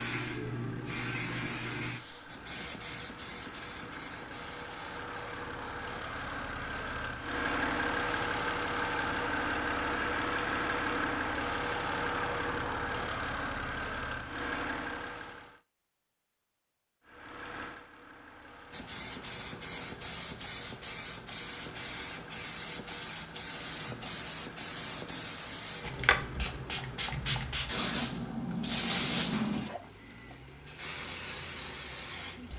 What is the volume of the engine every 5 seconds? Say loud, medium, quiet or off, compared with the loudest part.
quiet, loud, loud, quiet, quiet, quiet, quiet.